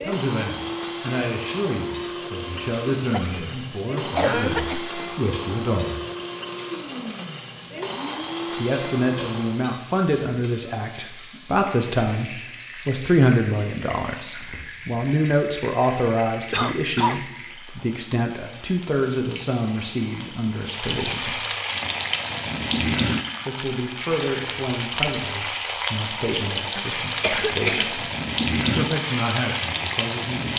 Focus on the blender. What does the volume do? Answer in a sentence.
The volume of the blender stays about the same.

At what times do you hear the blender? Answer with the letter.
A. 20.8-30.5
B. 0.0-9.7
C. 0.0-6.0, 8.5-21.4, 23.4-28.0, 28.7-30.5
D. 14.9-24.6
B.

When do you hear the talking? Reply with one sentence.
You can hear the talking from 0.0 to 6.0 s, from 8.5 to 21.4 s, from 23.4 to 28.0 s and from 28.7 to 30.5 s.